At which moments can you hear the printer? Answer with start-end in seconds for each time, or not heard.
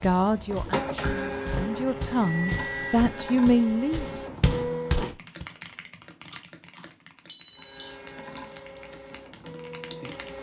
0.1-5.2, 7.5-10.3.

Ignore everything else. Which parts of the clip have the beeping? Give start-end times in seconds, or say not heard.
1.9-3.0, 6.3-8.1.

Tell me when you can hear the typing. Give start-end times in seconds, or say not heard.
5.0-10.3.